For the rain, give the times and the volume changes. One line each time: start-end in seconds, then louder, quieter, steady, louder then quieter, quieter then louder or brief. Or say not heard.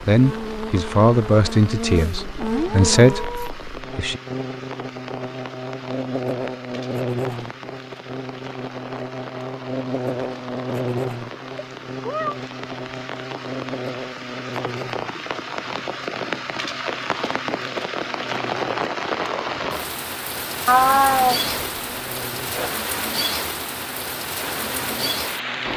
0.0-25.7 louder.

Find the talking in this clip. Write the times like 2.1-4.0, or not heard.
0.0-4.2.